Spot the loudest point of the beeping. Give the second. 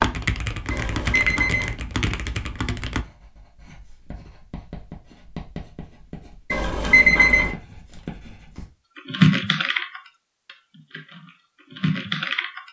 7 s.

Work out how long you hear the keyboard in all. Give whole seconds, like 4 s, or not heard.
7 s.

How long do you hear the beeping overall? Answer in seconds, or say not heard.
2 s.